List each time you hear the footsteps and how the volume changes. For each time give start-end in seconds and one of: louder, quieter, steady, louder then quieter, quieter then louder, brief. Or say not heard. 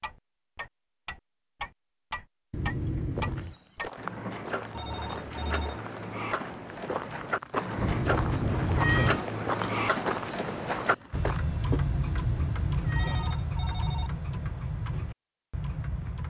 3.1-11.4 louder.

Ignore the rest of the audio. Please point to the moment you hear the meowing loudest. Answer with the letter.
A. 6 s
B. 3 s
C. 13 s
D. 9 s
D.